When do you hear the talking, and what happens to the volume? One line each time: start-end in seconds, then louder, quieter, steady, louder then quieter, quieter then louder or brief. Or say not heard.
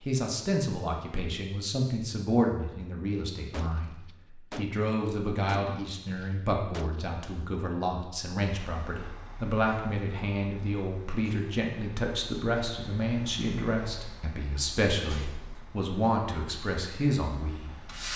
0.0-18.1 steady.